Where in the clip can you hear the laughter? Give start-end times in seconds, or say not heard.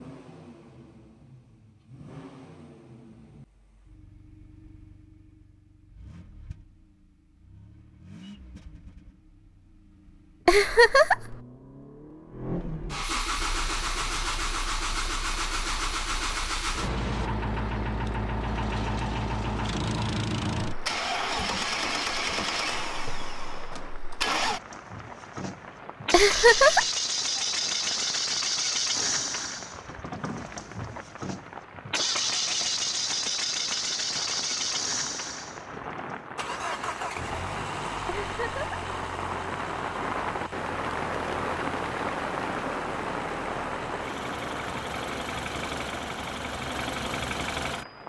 10.4-11.3, 26.1-26.9, 38.0-38.8.